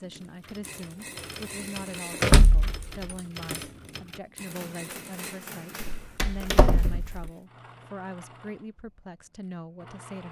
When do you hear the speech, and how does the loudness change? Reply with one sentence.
You can hear the speech from 0.0 to 10.2 s, at a steady volume.